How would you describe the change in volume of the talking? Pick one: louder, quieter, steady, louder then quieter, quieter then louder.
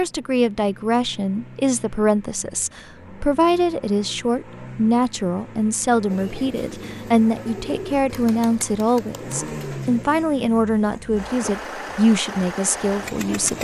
steady.